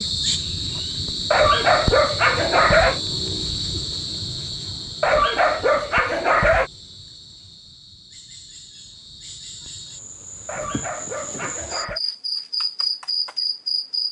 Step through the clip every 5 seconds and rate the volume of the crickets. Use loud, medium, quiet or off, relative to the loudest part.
loud, quiet, loud.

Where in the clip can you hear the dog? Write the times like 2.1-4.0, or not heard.
1.3-3.0, 5.0-6.7, 10.4-12.0.